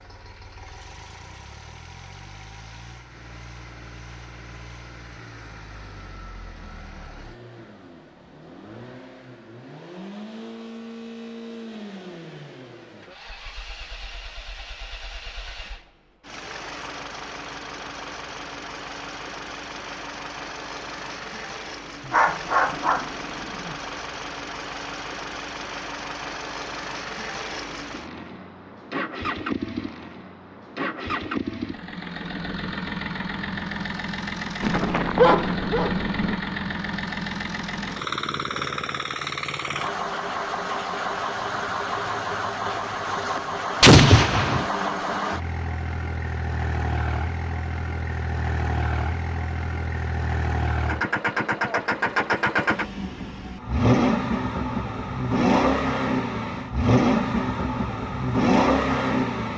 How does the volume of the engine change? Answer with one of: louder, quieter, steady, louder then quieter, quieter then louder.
louder.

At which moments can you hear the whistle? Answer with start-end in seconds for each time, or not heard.
not heard.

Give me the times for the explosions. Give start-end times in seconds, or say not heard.
43.8-44.7.